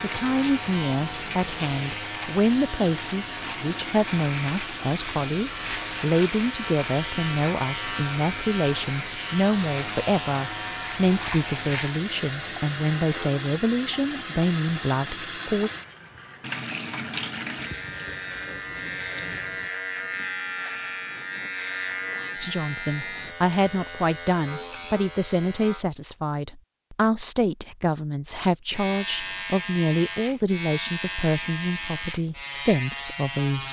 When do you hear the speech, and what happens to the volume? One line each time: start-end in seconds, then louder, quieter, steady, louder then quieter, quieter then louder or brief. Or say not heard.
0.0-15.7 steady
22.4-33.6 steady.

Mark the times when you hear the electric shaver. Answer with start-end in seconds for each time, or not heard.
0.0-13.3, 17.6-25.9, 28.7-33.6.